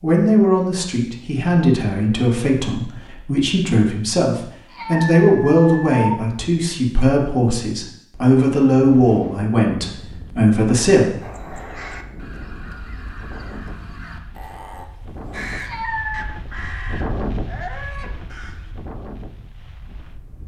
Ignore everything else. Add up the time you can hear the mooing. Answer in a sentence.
You can't hear the mooing here.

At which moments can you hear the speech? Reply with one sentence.
You can hear the speech from 0.0 to 11.2 s.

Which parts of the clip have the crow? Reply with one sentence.
The crow can be heard from 11.2 to 18.7 s.